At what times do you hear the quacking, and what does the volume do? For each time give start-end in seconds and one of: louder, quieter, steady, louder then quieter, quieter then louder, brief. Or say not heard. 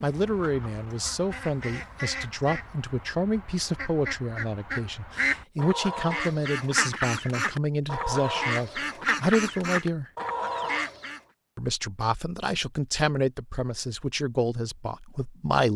0.0-11.2 louder.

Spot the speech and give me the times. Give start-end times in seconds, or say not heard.
0.0-10.1, 11.6-15.7.